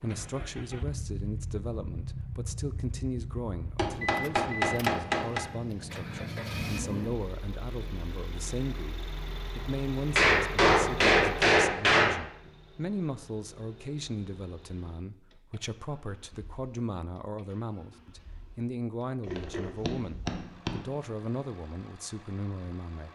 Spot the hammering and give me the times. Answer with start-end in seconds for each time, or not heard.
3.8-5.4, 10.2-12.2, 19.2-20.8.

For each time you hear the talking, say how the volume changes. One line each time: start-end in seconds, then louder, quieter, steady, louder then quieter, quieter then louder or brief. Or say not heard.
0.0-23.0 steady.